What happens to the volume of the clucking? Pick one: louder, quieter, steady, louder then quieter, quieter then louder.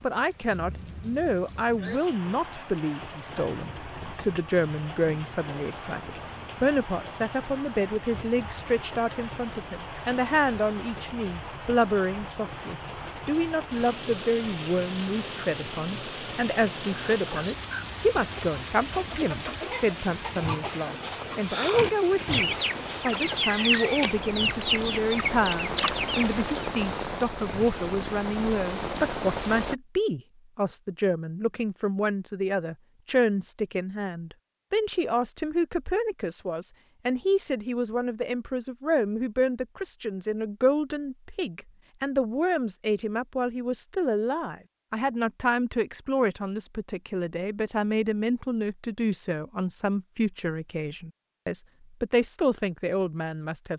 louder.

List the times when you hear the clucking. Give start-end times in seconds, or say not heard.
17.1-26.7.